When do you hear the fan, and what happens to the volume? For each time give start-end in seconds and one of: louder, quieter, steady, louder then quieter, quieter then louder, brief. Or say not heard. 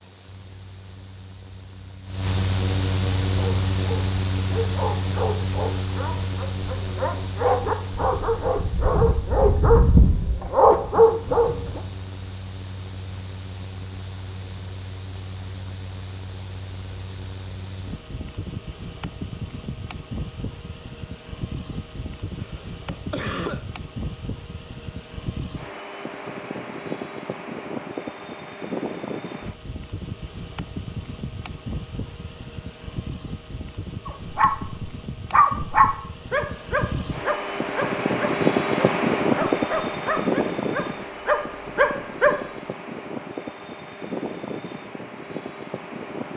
0.0-46.3 quieter then louder.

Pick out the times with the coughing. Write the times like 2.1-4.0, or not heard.
22.4-23.6.